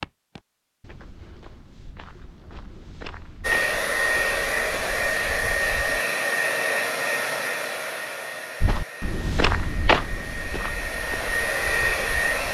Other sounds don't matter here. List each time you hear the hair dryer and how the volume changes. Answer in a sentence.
The hair dryer can be heard from 3.4 to 12.4 s, getting quieter then louder.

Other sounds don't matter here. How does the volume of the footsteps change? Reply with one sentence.
The loudness of the footsteps goes up, then down.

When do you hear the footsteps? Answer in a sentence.
You can hear the footsteps from 0.0 to 6.0 s and from 8.6 to 12.4 s.